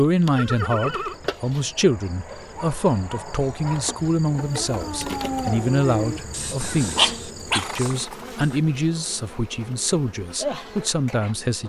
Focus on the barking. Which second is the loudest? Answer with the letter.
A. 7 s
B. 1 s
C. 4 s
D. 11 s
A.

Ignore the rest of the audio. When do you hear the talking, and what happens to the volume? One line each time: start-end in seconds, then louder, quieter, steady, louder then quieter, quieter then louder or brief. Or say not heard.
0.0-11.6 steady.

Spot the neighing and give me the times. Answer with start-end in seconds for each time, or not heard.
0.3-1.1, 6.6-8.3.